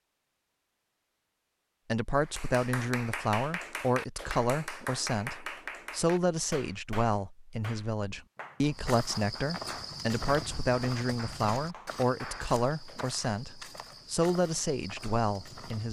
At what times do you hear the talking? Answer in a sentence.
You can hear the talking from 1.9 to 15.8 s.